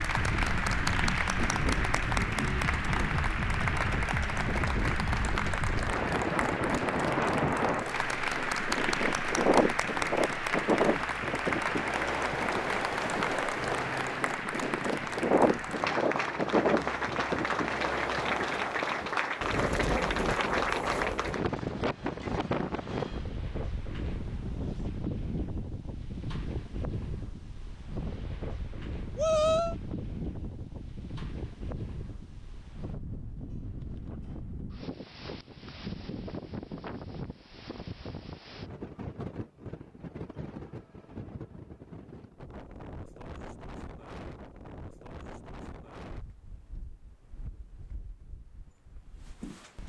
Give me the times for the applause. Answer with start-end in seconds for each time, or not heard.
0.0-21.4.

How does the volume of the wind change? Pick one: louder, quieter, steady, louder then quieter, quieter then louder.
quieter.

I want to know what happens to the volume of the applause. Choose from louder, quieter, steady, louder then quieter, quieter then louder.
steady.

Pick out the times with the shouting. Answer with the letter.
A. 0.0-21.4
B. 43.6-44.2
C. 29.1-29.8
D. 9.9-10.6
C.